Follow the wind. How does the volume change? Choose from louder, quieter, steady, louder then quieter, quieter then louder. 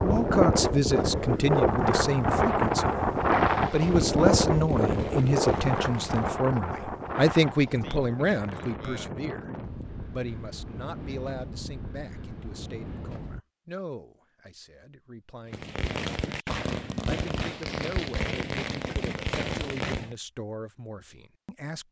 quieter.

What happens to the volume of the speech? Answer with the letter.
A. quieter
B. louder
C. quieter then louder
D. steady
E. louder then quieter
A.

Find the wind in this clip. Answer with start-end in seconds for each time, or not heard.
0.0-13.4.